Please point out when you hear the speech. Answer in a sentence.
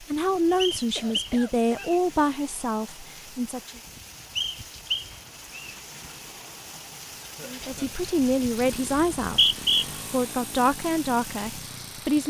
The speech can be heard from 0.0 to 3.8 s and from 7.5 to 12.2 s.